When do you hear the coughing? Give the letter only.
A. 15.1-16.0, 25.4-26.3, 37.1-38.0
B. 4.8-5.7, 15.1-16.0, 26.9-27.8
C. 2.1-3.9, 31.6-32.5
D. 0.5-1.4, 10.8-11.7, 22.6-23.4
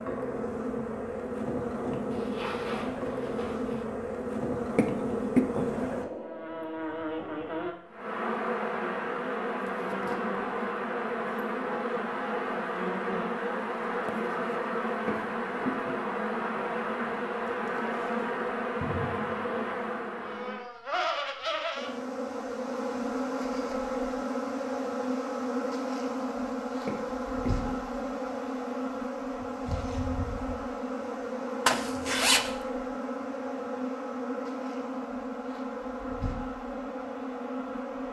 B.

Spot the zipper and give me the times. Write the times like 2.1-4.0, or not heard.
2.1-3.9, 31.6-32.5.